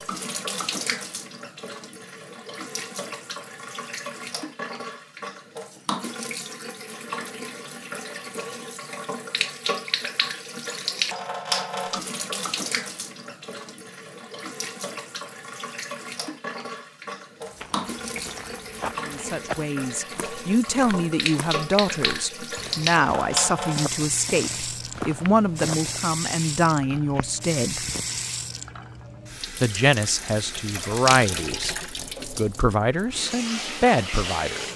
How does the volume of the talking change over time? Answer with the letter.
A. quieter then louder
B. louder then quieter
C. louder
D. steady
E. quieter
D.